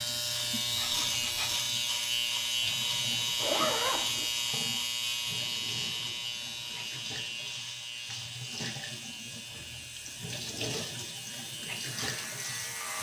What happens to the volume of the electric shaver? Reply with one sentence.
The volume of the electric shaver goes down.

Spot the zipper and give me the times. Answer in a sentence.
The zipper can be heard from 3.4 to 4.3 s and from 9.5 to 10.8 s.